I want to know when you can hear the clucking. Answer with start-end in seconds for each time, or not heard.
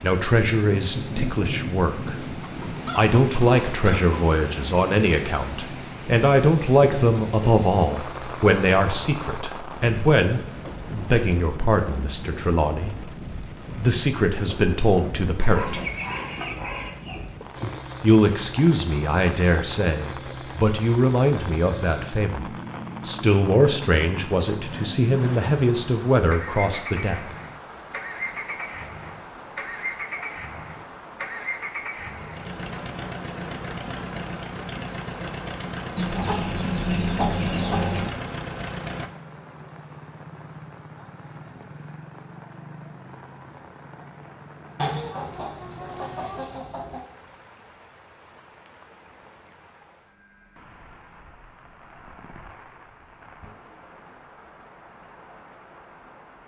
2.0-4.2, 15.4-17.2, 36.0-38.2, 44.8-47.0.